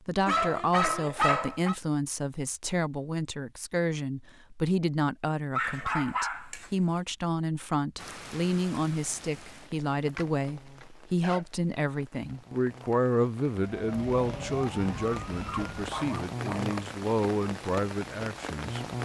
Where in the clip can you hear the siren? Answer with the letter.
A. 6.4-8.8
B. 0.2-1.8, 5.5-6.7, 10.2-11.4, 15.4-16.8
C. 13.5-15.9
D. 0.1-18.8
C.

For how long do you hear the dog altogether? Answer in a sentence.
You can hear the dog for 5 seconds altogether.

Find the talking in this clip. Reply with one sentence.
You can hear the talking from 0.1 to 18.8 s.